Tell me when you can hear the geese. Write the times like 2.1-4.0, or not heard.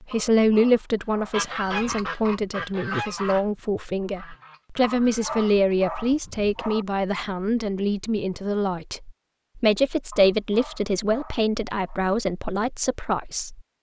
1.3-6.6.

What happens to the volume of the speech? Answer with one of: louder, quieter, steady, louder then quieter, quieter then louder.
steady.